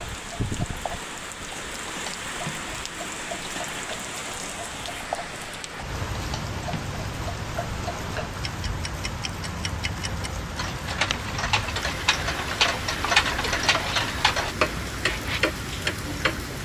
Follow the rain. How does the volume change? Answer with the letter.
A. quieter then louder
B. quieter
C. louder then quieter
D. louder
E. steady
E.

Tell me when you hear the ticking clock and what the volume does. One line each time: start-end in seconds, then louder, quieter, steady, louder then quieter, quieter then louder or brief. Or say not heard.
0.0-16.6 louder.